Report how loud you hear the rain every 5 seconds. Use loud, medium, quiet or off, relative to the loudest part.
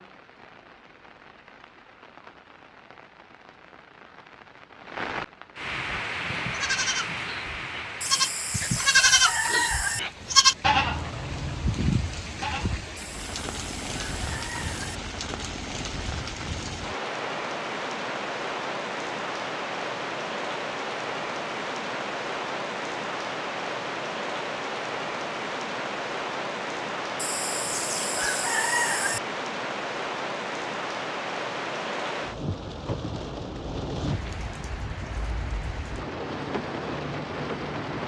quiet, loud, medium, loud, loud, loud, loud, loud.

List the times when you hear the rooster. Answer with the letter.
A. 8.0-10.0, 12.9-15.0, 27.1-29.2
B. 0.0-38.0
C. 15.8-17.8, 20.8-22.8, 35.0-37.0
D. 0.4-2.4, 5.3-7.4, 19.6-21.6
A.